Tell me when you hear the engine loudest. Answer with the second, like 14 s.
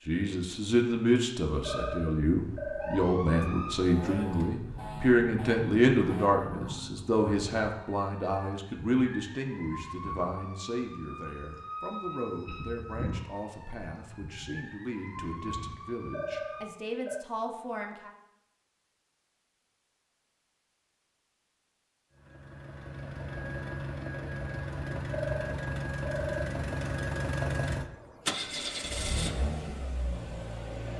27 s.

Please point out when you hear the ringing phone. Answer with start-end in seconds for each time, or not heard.
1.6-3.5, 16.1-17.2, 25.1-26.6.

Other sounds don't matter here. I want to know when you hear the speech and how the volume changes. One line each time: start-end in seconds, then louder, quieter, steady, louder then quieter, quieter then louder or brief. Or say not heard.
0.1-18.1 quieter.